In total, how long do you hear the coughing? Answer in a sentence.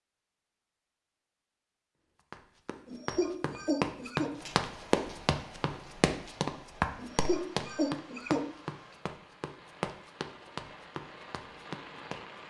The coughing can be heard for 3 seconds in total.